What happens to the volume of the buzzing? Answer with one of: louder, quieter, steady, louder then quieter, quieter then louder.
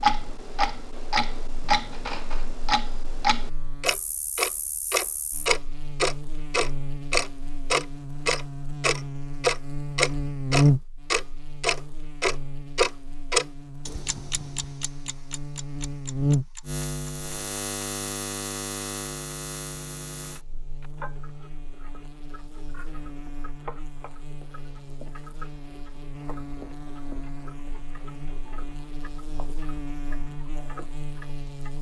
louder then quieter.